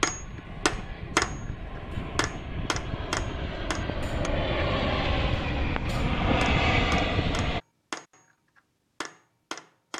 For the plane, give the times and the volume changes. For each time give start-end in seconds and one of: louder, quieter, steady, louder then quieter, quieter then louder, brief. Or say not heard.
0.0-7.6 louder.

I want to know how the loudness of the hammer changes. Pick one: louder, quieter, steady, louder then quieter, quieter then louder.
quieter.